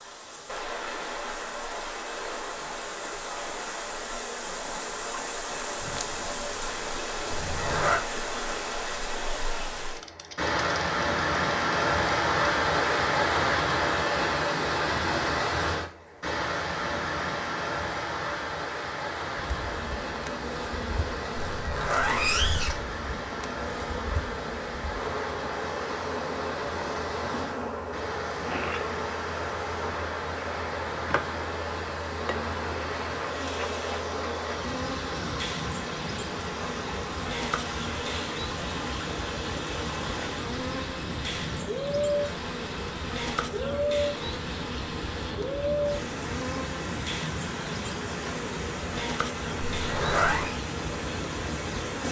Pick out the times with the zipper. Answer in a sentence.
The zipper can be heard from 7.3 to 8.0 s, from 21.4 to 22.8 s and from 49.6 to 50.5 s.